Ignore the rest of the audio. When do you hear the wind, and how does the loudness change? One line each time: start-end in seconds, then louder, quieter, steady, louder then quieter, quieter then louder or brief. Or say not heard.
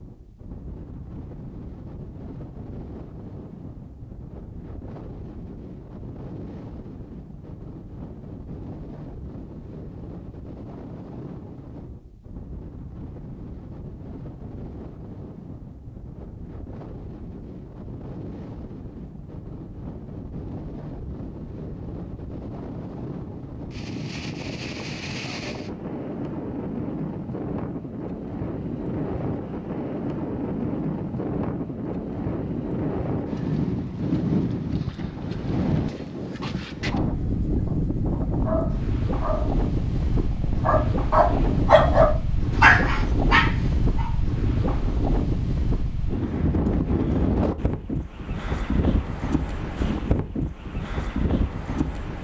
0.0-52.1 louder.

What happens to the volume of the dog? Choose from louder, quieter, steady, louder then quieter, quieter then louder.
louder then quieter.